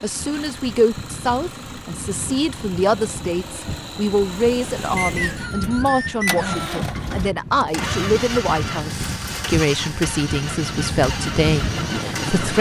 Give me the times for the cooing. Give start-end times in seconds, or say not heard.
not heard.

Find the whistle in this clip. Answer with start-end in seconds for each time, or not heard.
5.0-6.8.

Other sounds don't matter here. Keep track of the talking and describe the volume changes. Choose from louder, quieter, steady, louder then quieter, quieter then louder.
steady.